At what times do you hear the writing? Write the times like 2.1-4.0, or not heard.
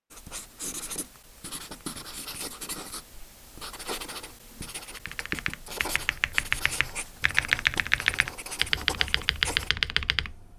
0.1-9.7.